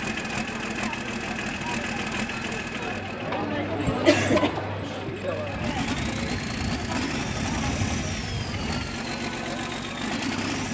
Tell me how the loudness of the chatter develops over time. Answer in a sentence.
The loudness of the chatter goes up, then down.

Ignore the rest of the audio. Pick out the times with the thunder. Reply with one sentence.
You can hear the thunder from 5.5 to 8.9 s.